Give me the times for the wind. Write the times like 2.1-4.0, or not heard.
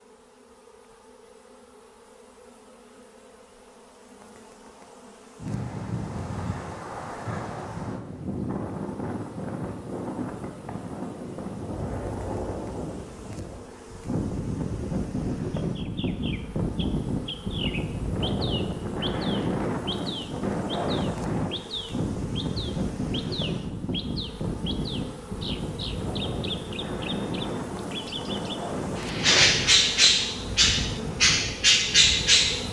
5.3-32.6.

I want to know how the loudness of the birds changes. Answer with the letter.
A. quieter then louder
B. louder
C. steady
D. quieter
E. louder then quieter
B.